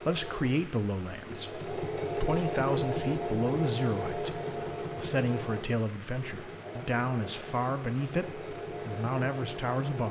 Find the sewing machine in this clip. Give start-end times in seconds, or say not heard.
0.0-10.0.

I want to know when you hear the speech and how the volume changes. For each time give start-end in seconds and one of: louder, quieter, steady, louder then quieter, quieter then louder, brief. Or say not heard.
0.1-10.0 steady.